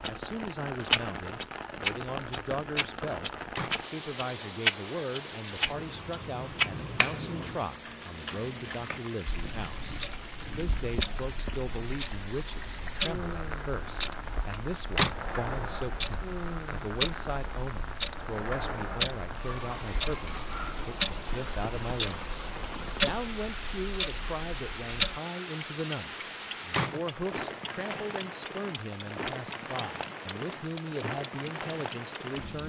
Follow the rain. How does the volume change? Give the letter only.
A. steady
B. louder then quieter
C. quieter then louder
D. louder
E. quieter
A.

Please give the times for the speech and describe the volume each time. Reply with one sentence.
The speech can be heard from 0.0 to 32.6 s, at a steady volume.